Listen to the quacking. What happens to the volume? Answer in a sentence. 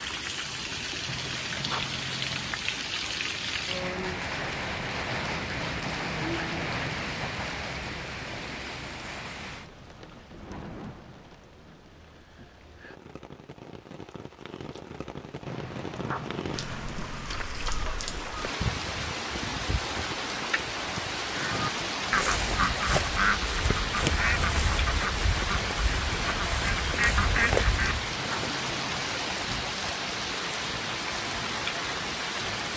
The loudness of the quacking goes down, then up.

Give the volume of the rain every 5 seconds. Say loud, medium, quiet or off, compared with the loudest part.
loud, loud, quiet, loud, loud, loud, loud.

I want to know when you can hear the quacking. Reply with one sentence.
You can hear the quacking from 21.3 to 28.1 s.